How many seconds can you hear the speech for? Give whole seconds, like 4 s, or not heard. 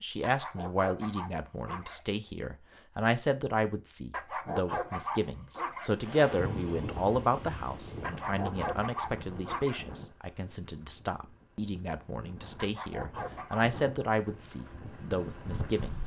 16 s.